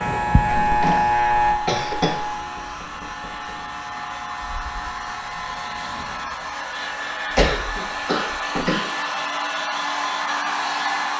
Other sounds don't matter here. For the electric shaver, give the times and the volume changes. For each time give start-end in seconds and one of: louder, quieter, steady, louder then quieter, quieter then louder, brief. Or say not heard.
0.0-8.3 quieter.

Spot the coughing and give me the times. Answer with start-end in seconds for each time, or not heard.
0.6-2.4, 7.3-9.3.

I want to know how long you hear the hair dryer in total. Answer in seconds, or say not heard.
11 s.